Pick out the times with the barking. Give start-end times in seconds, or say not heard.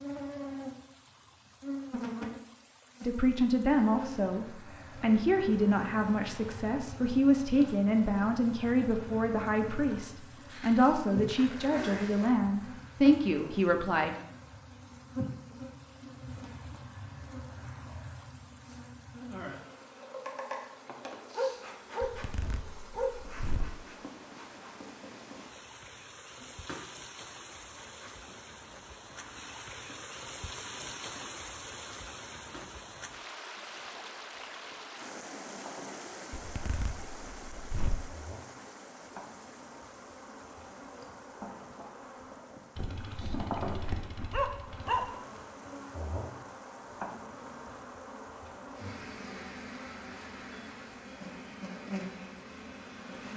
21.3-23.1, 42.8-45.1.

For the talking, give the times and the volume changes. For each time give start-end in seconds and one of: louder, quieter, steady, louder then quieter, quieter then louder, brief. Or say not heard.
3.0-14.2 steady.